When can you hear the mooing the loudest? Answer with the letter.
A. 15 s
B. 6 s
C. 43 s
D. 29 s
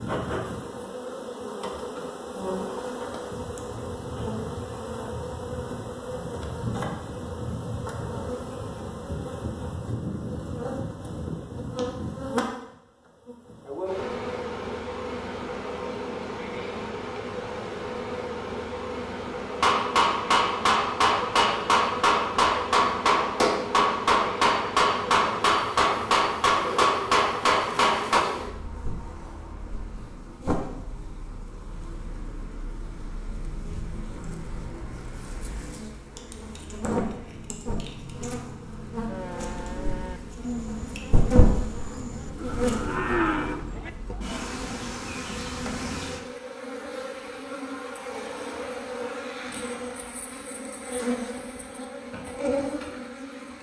C.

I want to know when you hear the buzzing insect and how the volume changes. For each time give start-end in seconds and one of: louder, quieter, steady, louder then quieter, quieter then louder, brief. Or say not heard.
0.0-53.5 steady.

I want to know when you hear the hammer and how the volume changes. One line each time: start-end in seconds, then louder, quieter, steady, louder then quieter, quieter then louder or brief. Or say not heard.
19.6-28.2 steady.